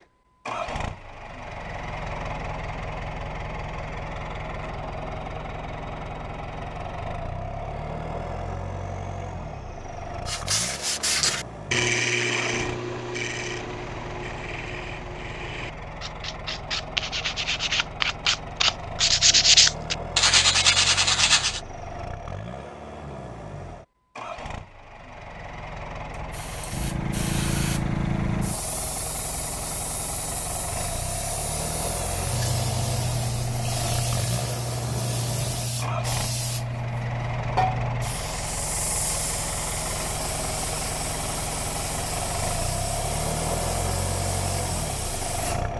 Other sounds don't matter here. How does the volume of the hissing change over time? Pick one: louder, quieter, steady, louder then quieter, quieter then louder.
quieter.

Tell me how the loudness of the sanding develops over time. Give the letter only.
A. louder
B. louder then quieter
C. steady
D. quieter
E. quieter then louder
E.